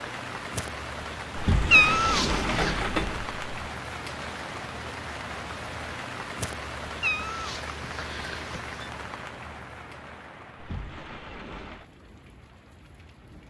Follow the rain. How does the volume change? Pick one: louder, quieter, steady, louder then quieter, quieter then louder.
quieter.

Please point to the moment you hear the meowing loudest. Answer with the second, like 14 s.
2 s.